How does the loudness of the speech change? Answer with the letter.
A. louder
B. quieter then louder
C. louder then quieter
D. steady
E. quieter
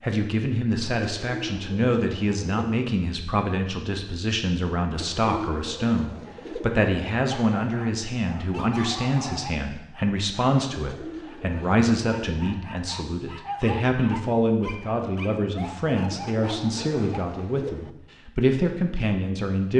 D.